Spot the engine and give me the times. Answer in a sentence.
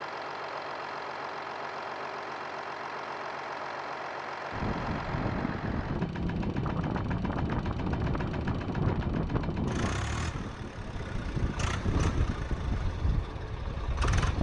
The engine can be heard from 0.0 to 14.3 s.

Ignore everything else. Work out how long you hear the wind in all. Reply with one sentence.
You can hear the wind for 10 seconds altogether.